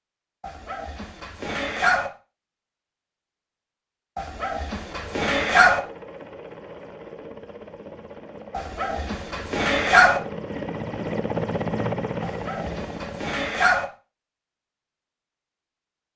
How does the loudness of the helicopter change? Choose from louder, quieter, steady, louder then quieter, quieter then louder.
louder.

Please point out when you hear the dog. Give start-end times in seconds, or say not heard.
0.4-2.1, 4.2-5.8, 8.5-10.2, 12.2-13.8.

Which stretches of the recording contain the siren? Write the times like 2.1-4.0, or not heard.
not heard.